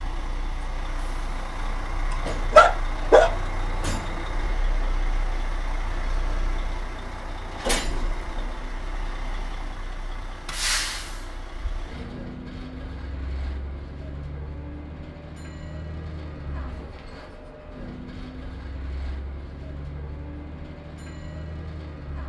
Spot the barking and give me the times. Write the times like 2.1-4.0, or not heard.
2.5-3.3.